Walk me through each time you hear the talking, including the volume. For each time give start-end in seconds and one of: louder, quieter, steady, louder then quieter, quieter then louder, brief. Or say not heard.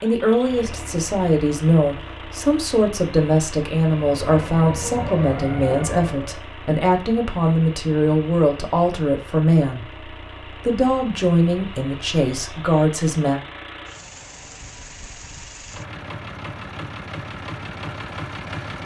0.0-13.4 steady.